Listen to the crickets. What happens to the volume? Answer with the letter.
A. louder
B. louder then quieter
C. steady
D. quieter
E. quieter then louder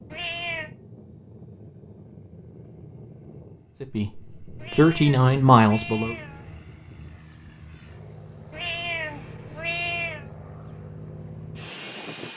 D.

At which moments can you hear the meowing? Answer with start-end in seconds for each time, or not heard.
0.1-0.7, 4.5-6.7, 8.5-10.3.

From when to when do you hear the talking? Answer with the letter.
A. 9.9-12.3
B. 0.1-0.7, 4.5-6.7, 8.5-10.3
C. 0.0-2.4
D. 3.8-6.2
D.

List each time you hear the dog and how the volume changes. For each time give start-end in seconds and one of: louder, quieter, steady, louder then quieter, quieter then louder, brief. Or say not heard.
not heard.